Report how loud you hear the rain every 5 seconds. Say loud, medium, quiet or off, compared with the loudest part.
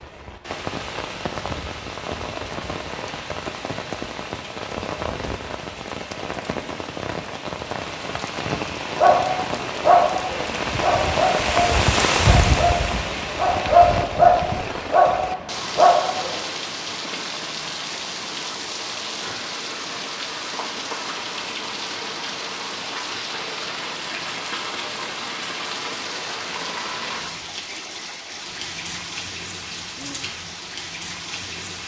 medium, medium, loud, medium, medium, medium, medium.